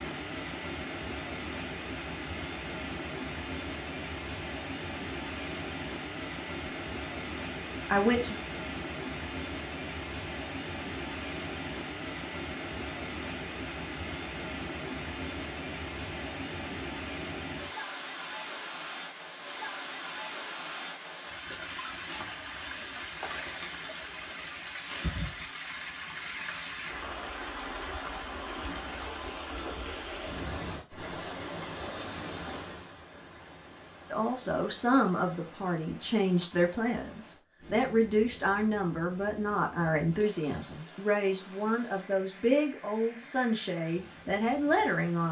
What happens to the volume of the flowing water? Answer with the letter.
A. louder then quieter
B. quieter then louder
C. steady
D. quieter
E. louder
D.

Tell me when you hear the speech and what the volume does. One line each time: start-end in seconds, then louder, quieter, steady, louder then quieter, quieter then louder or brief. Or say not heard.
7.8-8.4 brief
34.1-45.2 steady.